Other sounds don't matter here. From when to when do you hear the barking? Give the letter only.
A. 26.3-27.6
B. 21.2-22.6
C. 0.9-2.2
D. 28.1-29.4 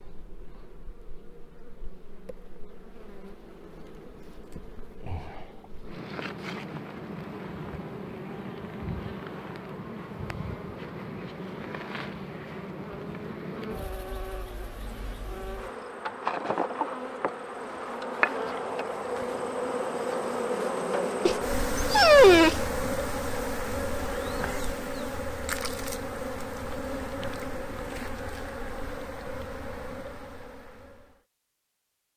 B.